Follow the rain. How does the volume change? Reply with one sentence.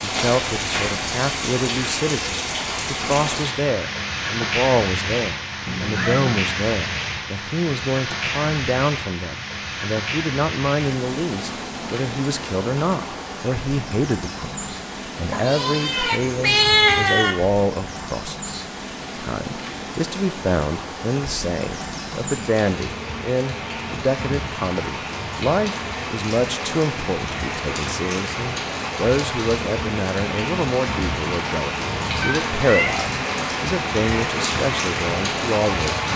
The volume of the rain goes down, then up.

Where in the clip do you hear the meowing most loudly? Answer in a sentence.
The loudest moment of the meowing is at 17 seconds.